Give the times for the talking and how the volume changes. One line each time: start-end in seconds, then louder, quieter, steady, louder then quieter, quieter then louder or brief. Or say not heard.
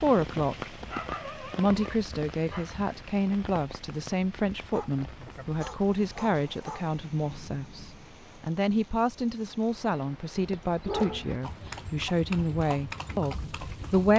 0.0-0.8 brief
1.4-14.1 steady.